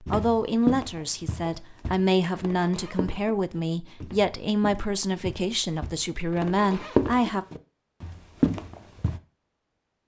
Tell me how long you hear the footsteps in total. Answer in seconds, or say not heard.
9 s.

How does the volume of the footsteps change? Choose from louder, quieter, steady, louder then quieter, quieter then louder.
quieter then louder.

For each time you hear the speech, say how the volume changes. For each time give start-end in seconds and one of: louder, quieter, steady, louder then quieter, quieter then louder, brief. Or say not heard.
0.0-7.5 steady.